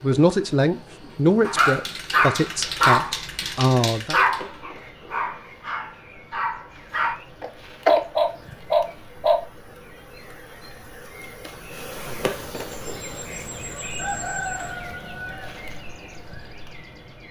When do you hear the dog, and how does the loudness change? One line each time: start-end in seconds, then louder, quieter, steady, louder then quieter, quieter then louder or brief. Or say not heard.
1.4-9.4 quieter then louder.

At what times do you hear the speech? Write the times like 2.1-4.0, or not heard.
0.0-4.2.